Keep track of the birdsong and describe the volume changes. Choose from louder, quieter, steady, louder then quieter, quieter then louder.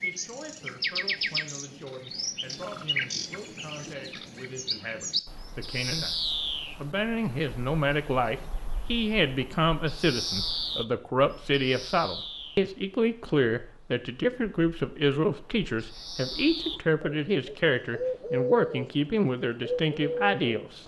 quieter then louder.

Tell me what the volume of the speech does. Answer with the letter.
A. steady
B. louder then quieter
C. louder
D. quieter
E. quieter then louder
C.